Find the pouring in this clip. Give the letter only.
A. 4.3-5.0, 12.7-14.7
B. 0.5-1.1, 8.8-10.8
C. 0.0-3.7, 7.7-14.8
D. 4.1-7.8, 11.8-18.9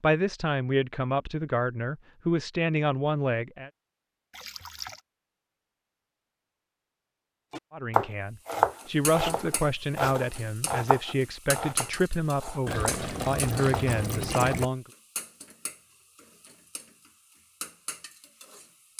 A.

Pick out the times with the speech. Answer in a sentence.
You can hear the speech from 0.0 to 3.7 s and from 7.7 to 14.8 s.